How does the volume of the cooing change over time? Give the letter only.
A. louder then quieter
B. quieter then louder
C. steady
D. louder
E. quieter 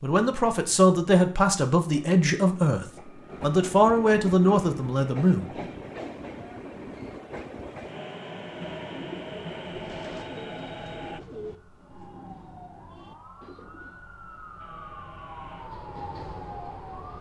E.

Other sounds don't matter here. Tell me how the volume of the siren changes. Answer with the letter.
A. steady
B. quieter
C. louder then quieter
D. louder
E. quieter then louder
D.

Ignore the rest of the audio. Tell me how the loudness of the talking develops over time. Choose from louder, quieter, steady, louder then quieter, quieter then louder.
steady.